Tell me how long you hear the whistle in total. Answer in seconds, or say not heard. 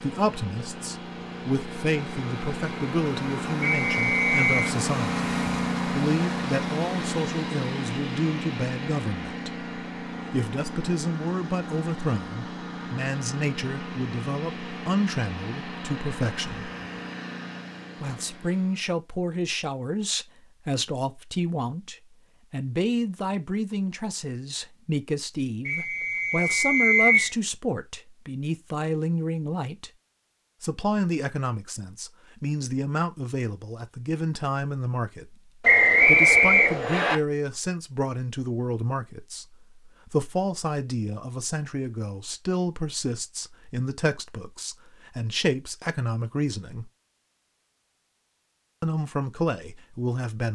4 s.